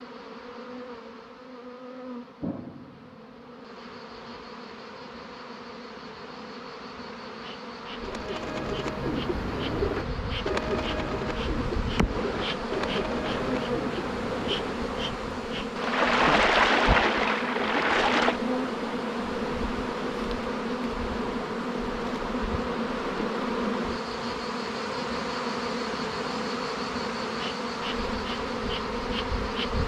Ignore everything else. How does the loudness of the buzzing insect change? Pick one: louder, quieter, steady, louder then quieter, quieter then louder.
louder.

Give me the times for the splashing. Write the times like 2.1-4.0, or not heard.
15.8-18.4.